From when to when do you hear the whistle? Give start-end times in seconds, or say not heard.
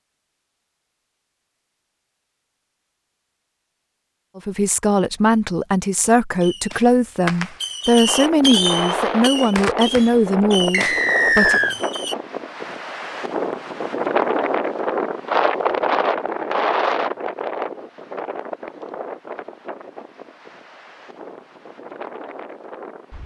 10.7-11.8.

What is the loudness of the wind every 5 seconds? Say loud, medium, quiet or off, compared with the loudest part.
off, loud, loud, loud, quiet.